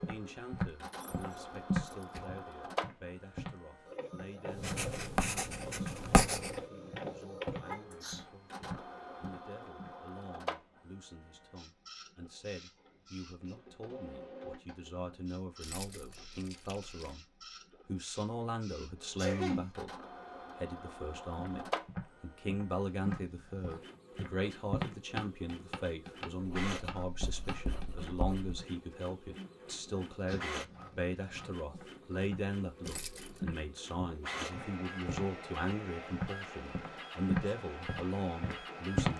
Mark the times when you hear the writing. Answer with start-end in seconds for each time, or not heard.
4.5-6.6, 26.4-28.6.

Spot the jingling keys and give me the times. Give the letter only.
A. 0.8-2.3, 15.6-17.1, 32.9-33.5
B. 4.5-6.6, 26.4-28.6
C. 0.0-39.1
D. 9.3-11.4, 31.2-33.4
A.